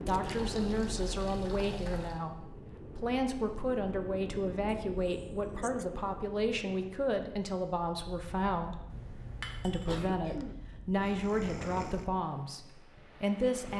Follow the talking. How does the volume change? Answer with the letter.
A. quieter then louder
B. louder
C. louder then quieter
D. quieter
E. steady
E.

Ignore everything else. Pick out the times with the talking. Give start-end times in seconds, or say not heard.
0.0-8.8, 9.7-13.7.